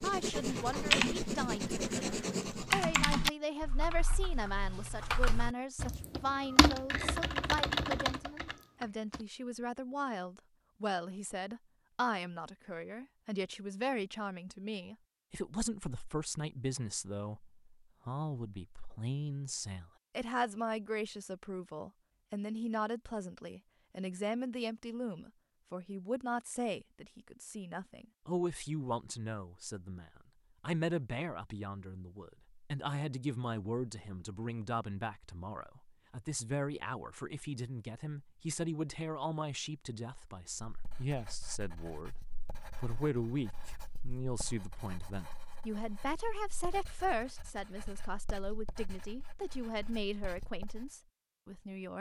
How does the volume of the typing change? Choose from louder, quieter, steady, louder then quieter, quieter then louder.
quieter then louder.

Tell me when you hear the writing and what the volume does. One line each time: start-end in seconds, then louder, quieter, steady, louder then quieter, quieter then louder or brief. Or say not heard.
0.0-2.9 brief
40.6-50.9 steady.